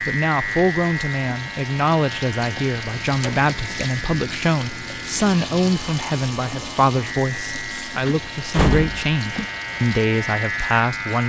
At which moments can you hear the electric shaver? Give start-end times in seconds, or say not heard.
0.0-11.2.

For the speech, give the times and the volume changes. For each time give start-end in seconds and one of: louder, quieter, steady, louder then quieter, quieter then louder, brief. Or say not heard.
0.0-11.2 steady.